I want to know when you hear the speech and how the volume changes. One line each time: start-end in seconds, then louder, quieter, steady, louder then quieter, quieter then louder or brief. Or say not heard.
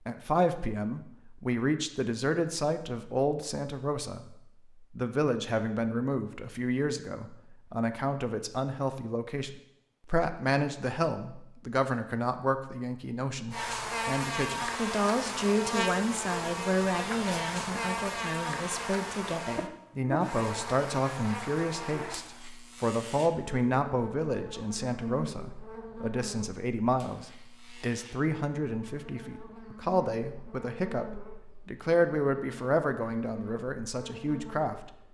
0.1-35.0 steady.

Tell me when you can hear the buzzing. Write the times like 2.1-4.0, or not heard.
13.5-35.0.